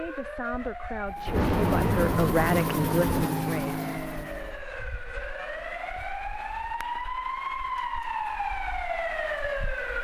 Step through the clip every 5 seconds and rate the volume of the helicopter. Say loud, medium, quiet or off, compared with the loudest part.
loud, off.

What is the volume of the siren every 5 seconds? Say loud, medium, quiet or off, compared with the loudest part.
medium, loud.